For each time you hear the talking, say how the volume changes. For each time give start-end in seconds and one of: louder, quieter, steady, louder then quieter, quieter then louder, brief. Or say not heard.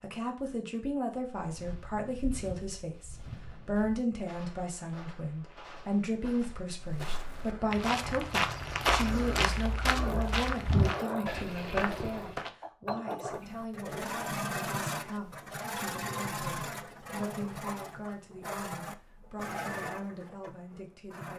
0.0-21.3 quieter.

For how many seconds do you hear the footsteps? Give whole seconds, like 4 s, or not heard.
11 s.